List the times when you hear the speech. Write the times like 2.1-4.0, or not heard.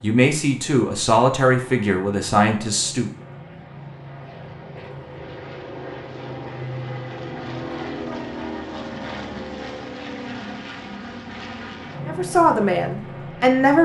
0.0-3.1, 12.1-13.8.